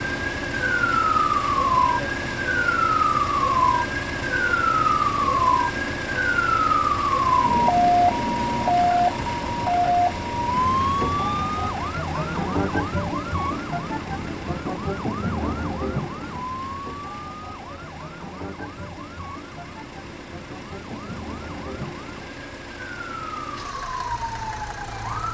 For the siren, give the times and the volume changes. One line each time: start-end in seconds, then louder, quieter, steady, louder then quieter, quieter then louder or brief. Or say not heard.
0.0-25.2 quieter.